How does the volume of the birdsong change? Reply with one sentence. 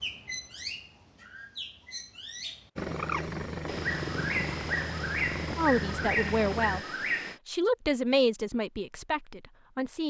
The loudness of the birdsong goes up.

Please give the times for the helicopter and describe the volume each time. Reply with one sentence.
You can hear the helicopter from 2.8 to 6.8 s, at a steady volume.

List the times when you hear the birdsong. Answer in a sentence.
The birdsong can be heard from 0.0 to 7.4 s.